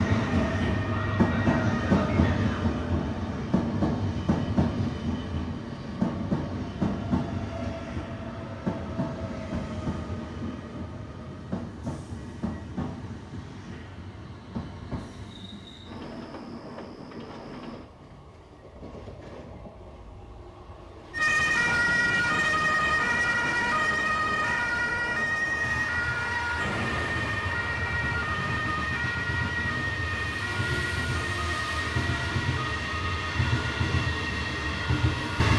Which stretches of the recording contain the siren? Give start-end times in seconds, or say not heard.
0.2-2.0, 21.1-35.4.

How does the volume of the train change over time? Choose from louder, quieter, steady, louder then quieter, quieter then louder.
quieter then louder.